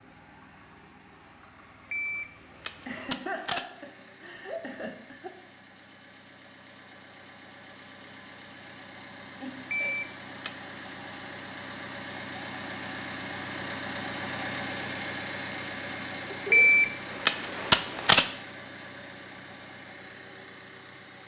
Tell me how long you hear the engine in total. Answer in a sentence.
The engine can be heard for 21 seconds in total.